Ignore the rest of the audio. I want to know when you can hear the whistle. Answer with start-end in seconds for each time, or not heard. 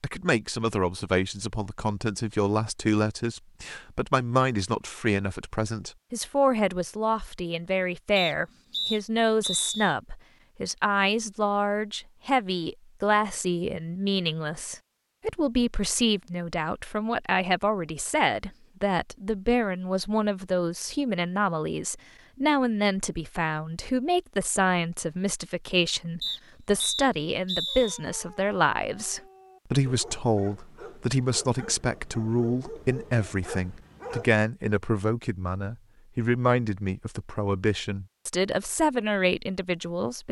8.2-9.9, 26.2-28.0.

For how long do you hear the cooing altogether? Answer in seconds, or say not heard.
not heard.